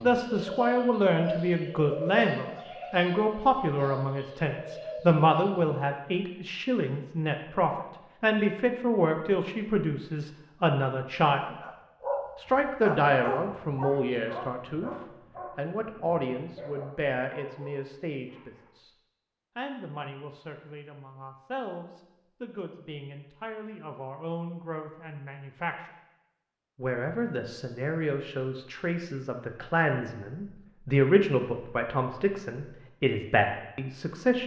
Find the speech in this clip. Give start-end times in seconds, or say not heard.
0.0-11.4, 12.3-14.9, 15.6-18.9, 19.6-25.9, 26.8-34.4.